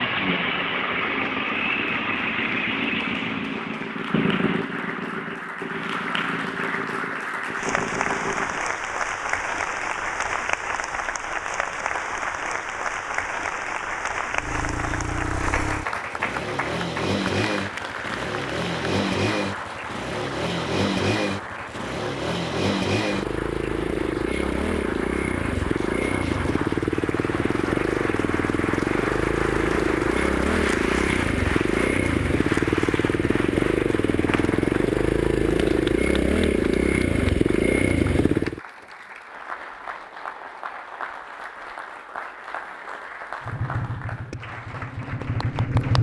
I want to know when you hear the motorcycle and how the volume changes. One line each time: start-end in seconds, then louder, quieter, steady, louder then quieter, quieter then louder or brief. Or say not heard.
0.0-8.7 quieter
14.3-38.6 louder
43.5-45.9 brief.